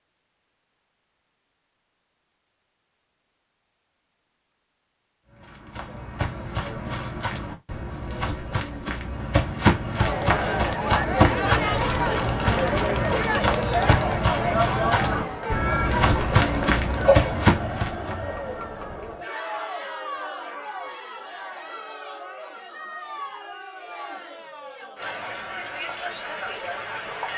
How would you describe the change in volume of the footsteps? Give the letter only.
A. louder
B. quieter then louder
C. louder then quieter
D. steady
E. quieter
A.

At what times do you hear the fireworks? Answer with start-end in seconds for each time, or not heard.
not heard.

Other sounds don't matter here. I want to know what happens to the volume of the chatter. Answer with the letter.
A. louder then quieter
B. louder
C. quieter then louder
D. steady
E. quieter
E.